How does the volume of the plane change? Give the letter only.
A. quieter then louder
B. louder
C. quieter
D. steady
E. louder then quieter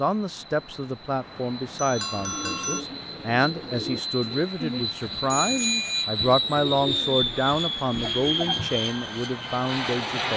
B.